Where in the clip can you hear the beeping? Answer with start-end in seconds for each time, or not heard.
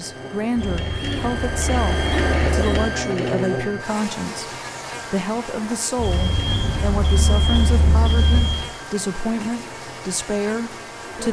0.6-2.9, 6.0-8.6.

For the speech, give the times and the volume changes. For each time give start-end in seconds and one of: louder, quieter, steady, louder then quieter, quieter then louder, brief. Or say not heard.
0.0-11.2 steady.